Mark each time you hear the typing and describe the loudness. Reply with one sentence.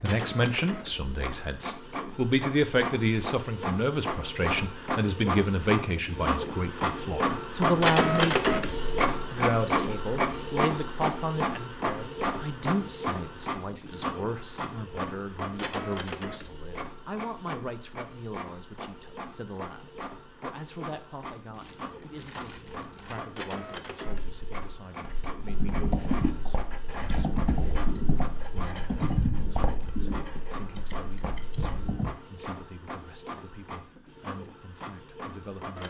The typing can be heard from 25.4 to 32.1 s, getting quieter.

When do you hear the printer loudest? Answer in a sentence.
The volume of the printer peaks at 8 seconds.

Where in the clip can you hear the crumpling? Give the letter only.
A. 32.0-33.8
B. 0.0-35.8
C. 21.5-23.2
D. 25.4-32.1
C.